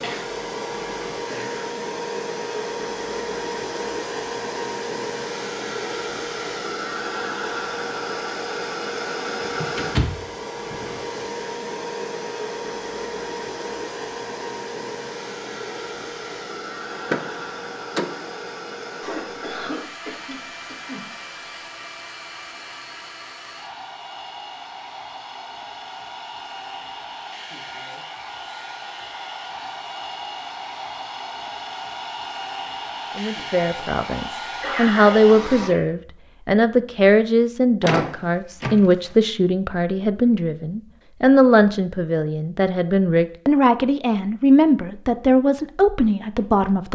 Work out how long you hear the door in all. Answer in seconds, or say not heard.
4 s.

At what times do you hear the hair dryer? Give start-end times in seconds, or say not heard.
0.0-35.8.